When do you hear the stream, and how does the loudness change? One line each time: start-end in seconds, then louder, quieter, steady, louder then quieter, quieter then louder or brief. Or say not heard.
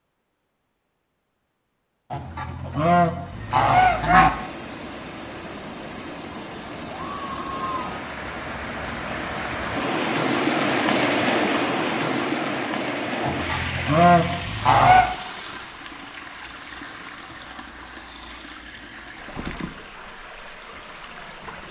3.2-21.6 louder then quieter.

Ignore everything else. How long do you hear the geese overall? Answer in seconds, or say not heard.
4 s.